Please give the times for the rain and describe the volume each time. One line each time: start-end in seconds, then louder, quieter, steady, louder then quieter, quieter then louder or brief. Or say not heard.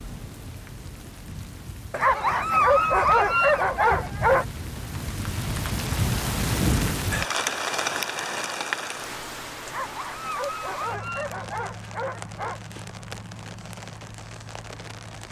0.0-15.2 louder then quieter.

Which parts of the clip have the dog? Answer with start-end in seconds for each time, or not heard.
1.9-4.5, 9.7-12.6.